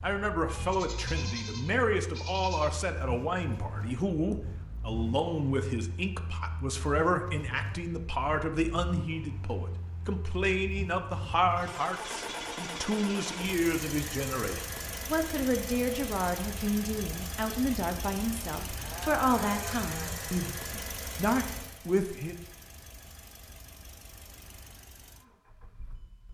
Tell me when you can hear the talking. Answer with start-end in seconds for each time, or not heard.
0.0-22.4.